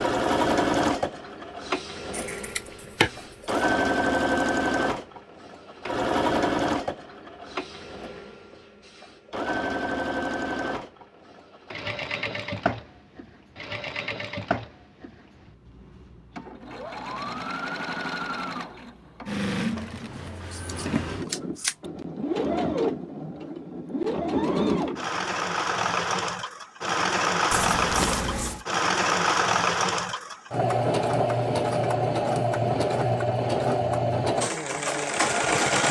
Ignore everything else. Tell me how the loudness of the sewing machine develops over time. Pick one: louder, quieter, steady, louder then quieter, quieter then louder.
quieter then louder.